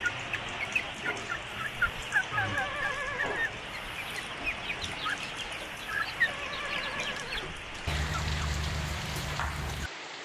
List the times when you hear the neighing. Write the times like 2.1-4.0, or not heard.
2.3-3.5, 6.2-7.7.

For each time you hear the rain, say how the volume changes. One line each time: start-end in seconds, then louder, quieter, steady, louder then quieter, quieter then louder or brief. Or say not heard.
0.0-10.1 steady.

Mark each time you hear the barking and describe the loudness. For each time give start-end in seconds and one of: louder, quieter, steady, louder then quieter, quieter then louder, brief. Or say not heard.
not heard.